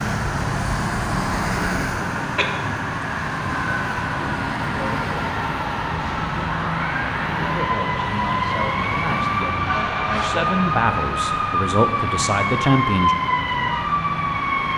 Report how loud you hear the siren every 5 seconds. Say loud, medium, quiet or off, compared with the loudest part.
medium, loud, loud.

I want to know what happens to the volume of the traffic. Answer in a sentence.
The loudness of the traffic goes down.